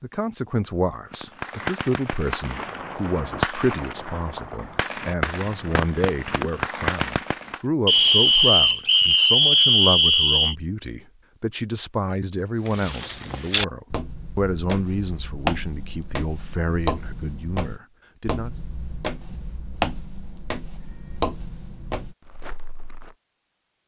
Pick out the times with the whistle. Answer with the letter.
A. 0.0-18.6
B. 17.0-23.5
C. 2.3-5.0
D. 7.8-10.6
D.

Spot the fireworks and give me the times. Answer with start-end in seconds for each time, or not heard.
1.1-7.6.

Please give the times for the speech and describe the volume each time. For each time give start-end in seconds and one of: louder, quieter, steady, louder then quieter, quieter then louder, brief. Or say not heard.
0.0-18.6 steady.